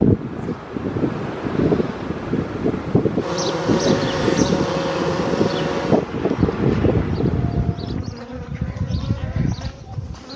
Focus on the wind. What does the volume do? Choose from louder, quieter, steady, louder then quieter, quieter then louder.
steady.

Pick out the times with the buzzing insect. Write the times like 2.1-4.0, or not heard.
3.2-10.3.